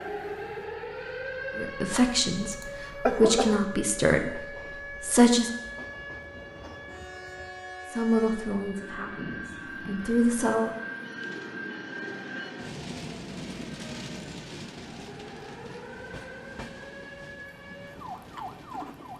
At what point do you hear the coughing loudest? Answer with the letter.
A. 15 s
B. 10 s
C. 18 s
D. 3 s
D.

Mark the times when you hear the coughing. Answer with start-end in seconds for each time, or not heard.
1.9-3.6.